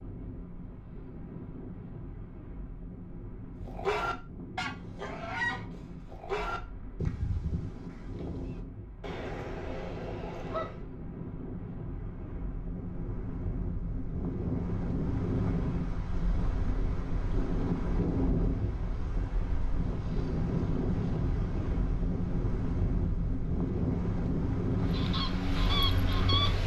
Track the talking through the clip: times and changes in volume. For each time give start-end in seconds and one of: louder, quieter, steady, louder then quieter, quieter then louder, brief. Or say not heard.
not heard.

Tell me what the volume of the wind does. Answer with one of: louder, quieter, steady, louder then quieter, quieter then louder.
louder.